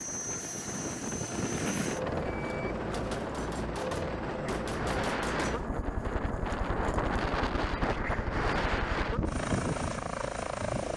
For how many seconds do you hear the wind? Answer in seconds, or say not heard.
11 s.